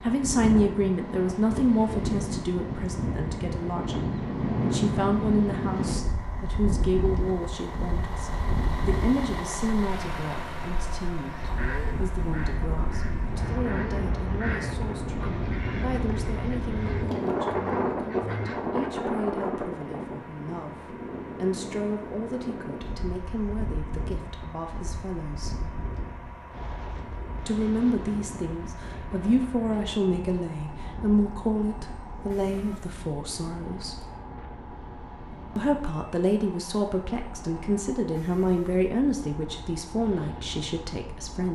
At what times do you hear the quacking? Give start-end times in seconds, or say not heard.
11.3-18.8.